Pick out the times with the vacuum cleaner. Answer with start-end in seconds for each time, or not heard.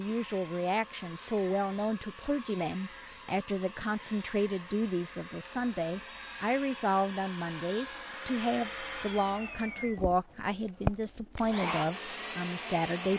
0.0-13.1.